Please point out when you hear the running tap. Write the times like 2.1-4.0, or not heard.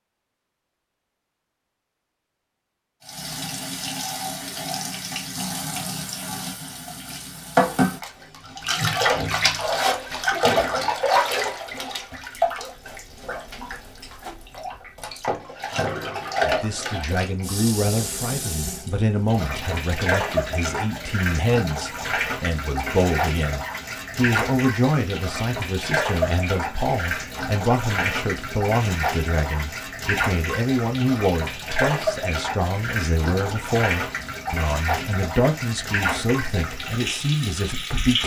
3.0-38.2.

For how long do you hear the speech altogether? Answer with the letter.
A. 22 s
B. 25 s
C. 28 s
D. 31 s
A.